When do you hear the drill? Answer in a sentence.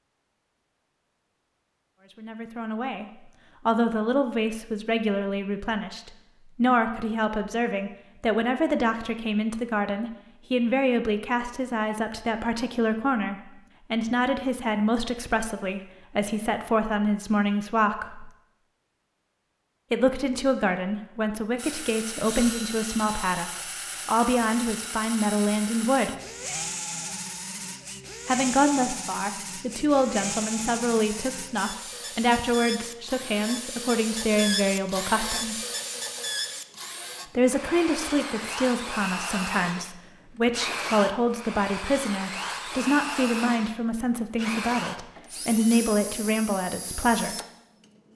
You can hear the drill from 21.6 to 48.1 s.